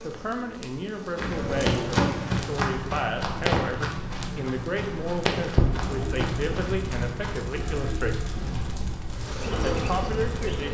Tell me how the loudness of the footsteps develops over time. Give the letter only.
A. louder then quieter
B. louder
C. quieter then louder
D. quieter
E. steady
D.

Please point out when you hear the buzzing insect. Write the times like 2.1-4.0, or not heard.
0.0-2.5, 9.1-10.7.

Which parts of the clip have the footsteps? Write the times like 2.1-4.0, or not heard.
1.1-9.3.